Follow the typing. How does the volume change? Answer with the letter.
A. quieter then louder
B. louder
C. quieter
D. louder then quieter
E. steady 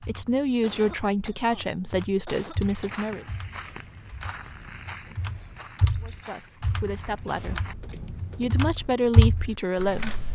B.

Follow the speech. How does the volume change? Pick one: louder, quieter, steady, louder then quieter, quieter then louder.
quieter then louder.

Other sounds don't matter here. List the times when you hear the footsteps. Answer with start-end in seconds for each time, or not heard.
2.6-8.6.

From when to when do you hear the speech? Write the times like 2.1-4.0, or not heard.
0.1-3.2, 6.0-10.2.